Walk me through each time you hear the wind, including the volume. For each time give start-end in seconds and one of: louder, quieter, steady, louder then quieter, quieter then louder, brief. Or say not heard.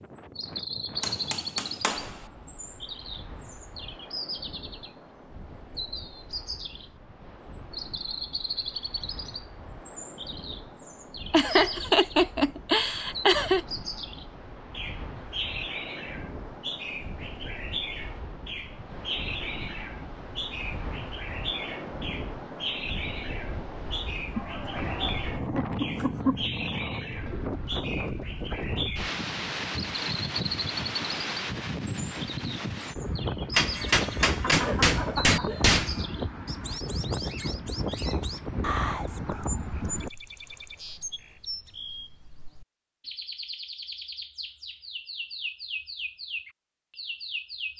0.0-40.1 louder.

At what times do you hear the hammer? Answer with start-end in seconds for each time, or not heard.
1.0-2.1, 33.5-36.0.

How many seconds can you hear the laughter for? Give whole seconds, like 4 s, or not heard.
6 s.